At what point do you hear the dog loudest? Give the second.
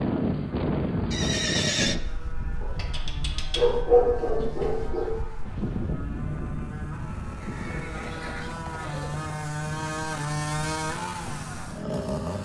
4 s.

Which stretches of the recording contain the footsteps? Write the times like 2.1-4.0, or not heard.
not heard.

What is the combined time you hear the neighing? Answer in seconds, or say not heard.
3 s.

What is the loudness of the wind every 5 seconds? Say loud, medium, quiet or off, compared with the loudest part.
loud, medium, medium.